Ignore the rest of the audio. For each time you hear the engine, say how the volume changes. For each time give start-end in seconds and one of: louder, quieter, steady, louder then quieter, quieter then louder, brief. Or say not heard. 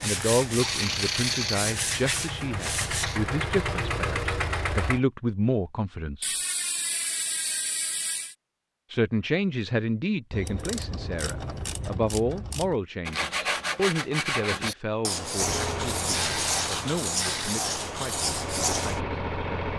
0.0-5.0 louder
15.3-19.7 quieter then louder.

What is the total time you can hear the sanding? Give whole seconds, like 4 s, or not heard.
9 s.